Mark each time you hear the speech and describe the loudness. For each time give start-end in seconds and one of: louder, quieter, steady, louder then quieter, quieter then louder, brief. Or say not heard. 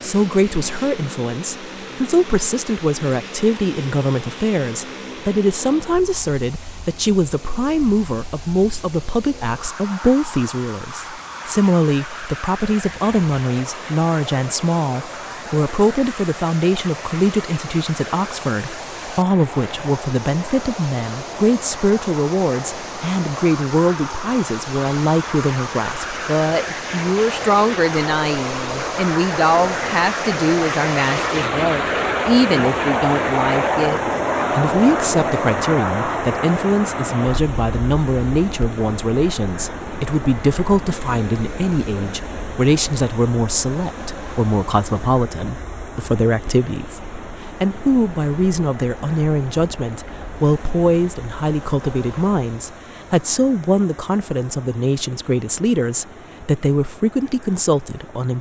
0.0-58.3 steady.